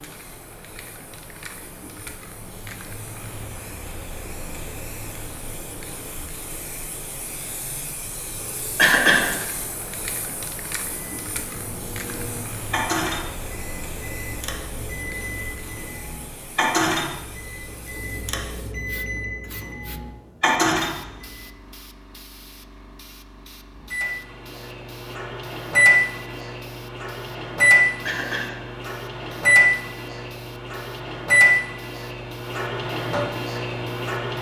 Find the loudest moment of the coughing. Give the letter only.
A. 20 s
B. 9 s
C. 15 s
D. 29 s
B.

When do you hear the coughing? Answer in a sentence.
You can hear the coughing from 8.8 to 9.3 s and from 28.1 to 28.6 s.